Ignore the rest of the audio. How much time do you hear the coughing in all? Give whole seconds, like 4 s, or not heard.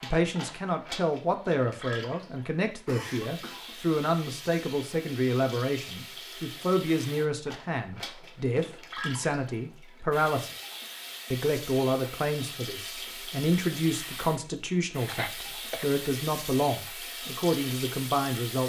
2 s.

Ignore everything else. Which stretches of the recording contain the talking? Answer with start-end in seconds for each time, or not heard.
0.0-10.5, 11.3-18.6.